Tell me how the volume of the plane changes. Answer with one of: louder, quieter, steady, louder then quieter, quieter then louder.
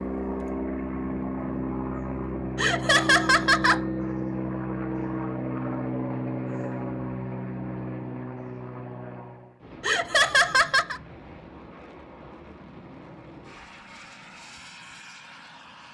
quieter.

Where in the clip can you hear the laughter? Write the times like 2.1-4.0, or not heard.
2.5-3.8, 9.8-11.0.